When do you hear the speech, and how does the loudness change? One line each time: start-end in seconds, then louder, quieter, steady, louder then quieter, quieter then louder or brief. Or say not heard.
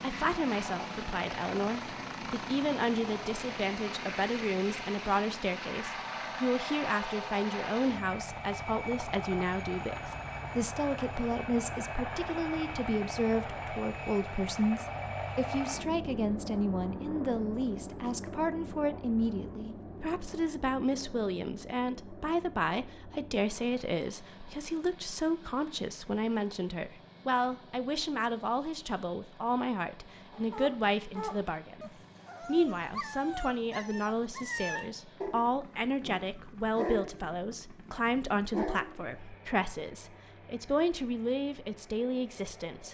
0.0-42.8 steady.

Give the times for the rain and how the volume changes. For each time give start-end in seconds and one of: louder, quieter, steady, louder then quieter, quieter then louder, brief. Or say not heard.
not heard.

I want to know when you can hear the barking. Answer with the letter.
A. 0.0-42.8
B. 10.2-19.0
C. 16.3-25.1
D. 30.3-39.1
D.